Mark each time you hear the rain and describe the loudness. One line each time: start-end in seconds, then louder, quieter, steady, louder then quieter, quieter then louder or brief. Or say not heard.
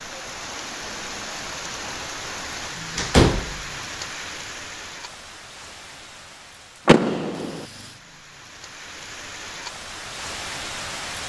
0.0-11.2 quieter then louder.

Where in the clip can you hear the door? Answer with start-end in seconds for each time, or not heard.
3.0-3.5, 6.8-7.7.